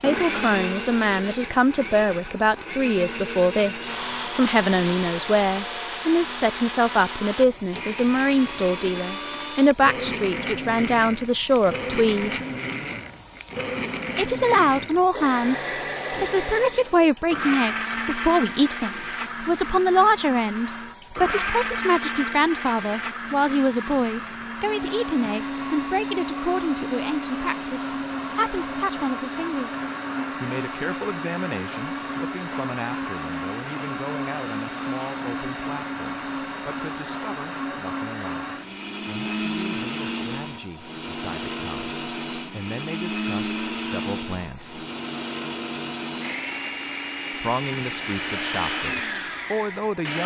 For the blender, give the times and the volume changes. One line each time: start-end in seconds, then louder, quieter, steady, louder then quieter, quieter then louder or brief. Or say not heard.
0.0-50.2 steady.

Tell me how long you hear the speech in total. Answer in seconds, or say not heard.
46 s.